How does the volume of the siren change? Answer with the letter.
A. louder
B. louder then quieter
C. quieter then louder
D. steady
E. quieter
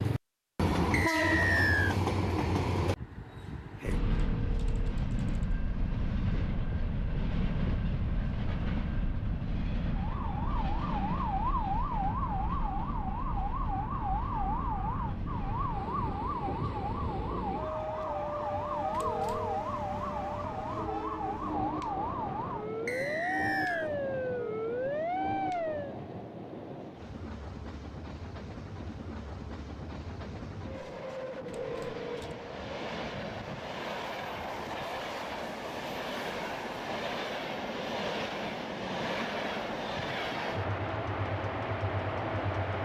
D.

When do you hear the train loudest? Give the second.
1 s.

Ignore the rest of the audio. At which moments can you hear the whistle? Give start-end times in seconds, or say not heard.
0.9-1.9, 22.9-23.9.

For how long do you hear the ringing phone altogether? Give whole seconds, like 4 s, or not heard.
3 s.